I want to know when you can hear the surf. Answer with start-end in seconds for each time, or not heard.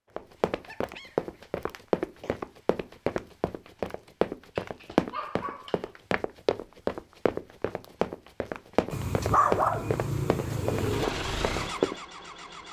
not heard.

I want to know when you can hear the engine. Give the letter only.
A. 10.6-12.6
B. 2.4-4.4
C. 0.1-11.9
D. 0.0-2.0
A.